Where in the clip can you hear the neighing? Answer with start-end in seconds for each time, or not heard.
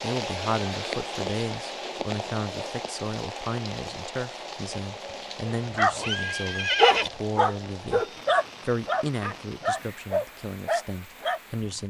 5.9-7.1.